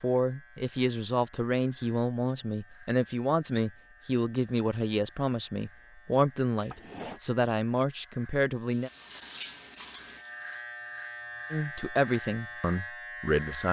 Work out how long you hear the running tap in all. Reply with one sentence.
The running tap can be heard for 2 seconds in total.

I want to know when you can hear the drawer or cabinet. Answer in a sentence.
The drawer or cabinet can be heard from 6.5 to 7.2 s.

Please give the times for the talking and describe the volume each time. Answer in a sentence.
You can hear the talking from 0.0 to 8.9 s, at a steady volume; and briefly from 11.5 to 13.6 s.